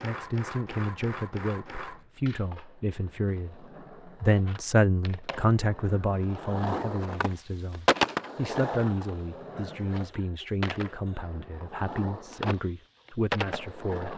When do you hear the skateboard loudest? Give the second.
8 s.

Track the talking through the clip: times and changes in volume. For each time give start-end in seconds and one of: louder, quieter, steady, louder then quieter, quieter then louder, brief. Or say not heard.
0.0-14.1 louder then quieter.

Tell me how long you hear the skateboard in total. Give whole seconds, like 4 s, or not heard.
14 s.